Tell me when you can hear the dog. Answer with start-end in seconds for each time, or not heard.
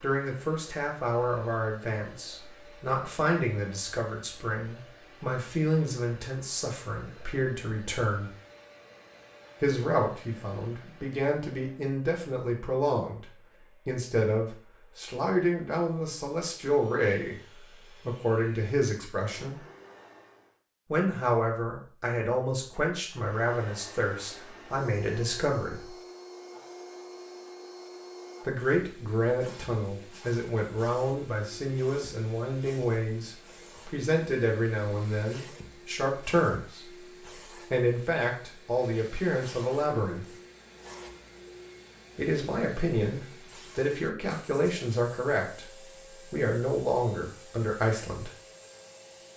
not heard.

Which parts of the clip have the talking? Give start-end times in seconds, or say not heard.
0.0-8.3, 9.6-19.6, 20.9-25.9, 28.4-36.9, 37.7-40.2, 42.1-48.3.